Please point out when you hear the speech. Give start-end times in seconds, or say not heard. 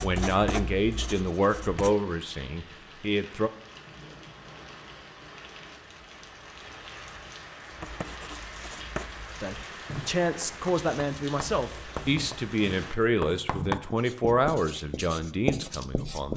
0.0-3.5, 9.4-16.3.